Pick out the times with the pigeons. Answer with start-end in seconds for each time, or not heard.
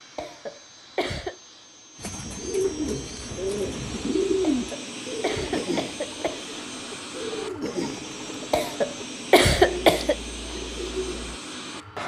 1.9-11.4.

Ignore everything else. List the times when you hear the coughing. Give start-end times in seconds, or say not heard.
0.1-1.4, 4.4-6.5, 8.5-10.2.